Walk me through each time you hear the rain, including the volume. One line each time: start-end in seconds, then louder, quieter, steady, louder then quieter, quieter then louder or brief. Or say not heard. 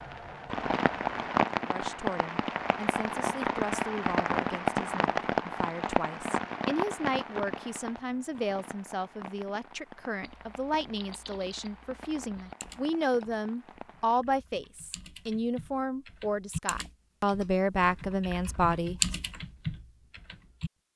0.0-14.2 quieter.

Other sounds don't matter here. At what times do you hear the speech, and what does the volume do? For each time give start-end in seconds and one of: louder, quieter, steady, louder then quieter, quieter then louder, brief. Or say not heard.
1.6-19.0 louder.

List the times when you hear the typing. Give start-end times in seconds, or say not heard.
10.2-20.7.